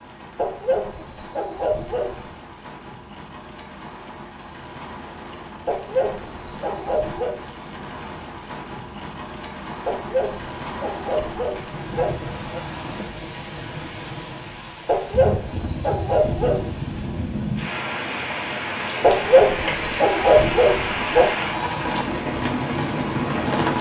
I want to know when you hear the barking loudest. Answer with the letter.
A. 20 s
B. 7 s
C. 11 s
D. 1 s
A.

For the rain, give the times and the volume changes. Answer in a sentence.
You can hear the rain from 0.0 to 23.7 s, getting louder.